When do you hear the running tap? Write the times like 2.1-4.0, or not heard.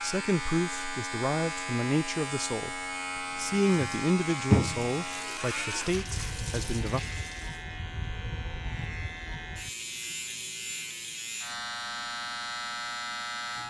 3.2-7.6.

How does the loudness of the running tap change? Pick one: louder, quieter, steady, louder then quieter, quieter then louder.
louder then quieter.